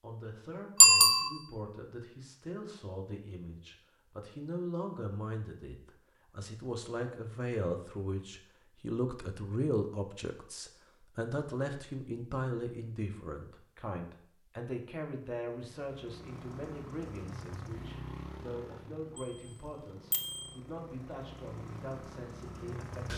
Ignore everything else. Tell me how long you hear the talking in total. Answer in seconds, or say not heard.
23 s.